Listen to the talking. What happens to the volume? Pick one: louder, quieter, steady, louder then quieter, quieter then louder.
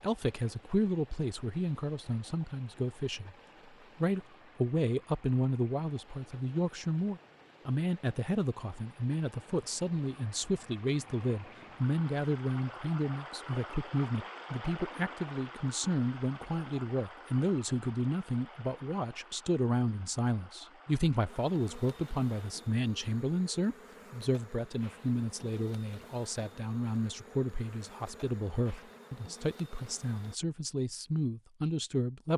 steady.